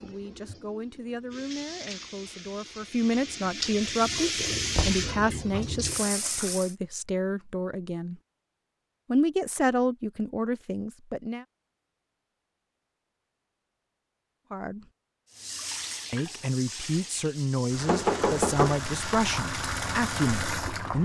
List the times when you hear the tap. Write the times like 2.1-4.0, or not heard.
0.0-6.8, 15.3-21.0.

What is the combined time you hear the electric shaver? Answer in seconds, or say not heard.
not heard.